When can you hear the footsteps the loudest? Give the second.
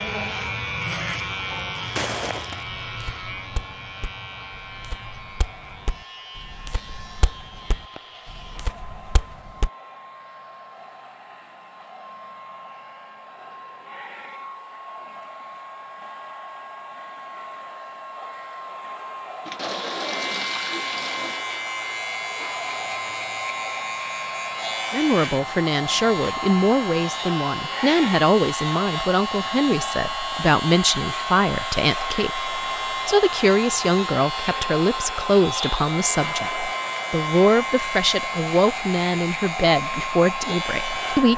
2 s.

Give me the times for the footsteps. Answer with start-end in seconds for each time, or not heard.
1.9-9.7.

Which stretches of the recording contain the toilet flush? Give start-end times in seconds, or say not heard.
19.4-21.4.